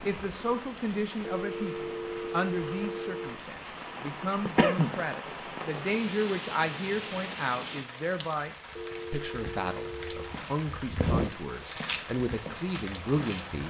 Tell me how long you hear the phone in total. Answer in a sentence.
The phone can be heard for 4 seconds in total.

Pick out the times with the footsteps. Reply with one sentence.
You can hear the footsteps from 10.2 to 13.6 s.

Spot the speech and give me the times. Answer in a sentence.
You can hear the speech from 0.0 to 13.6 s.